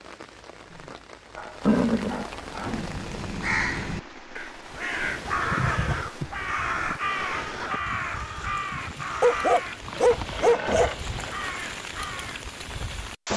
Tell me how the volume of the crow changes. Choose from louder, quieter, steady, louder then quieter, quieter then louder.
quieter.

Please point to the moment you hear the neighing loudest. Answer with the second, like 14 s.
2 s.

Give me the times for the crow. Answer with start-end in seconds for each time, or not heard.
2.5-12.6.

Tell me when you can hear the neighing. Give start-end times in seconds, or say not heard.
1.6-2.9, 5.4-6.1, 9.8-11.3.